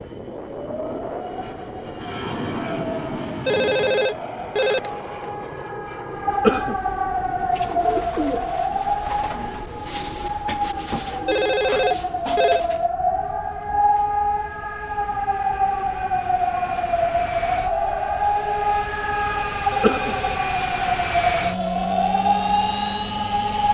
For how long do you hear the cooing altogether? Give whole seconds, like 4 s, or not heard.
6 s.